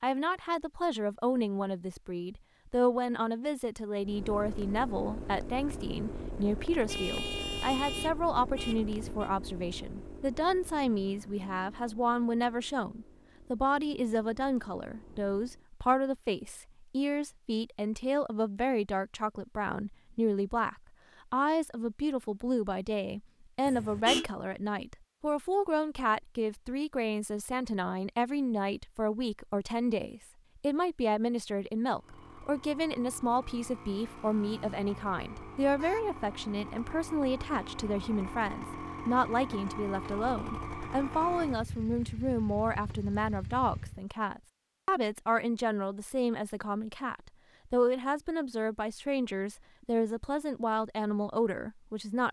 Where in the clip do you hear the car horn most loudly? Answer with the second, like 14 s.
24 s.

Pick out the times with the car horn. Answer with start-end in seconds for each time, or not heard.
6.8-9.3, 23.6-24.2, 35.6-36.1.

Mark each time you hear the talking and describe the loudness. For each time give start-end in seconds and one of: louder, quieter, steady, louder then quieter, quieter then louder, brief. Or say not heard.
0.0-52.2 steady.